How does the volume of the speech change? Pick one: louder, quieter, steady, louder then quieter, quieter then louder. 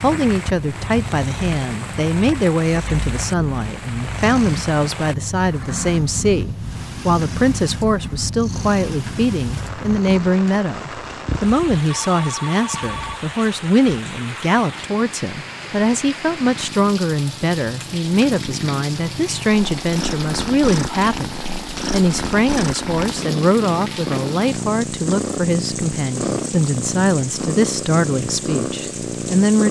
steady.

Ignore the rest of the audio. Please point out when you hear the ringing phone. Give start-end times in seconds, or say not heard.
11.9-13.2.